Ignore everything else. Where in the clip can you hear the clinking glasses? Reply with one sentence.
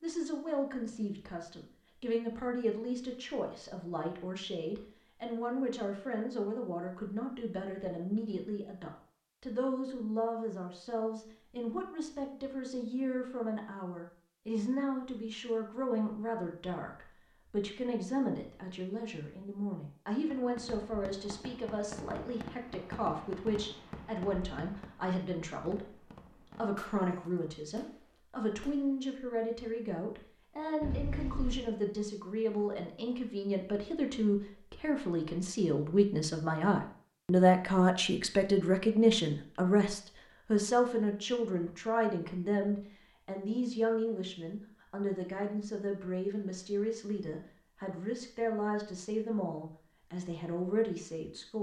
The clinking glasses can be heard from 30.8 to 31.6 s.